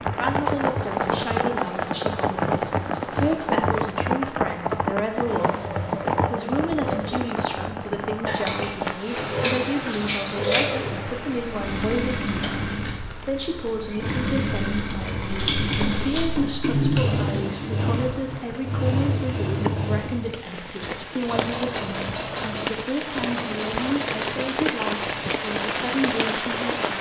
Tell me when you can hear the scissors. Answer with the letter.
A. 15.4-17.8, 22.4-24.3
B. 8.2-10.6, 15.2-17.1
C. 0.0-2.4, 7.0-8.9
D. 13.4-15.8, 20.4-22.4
B.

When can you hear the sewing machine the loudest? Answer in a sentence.
The loudest moment of the sewing machine is at 17 seconds.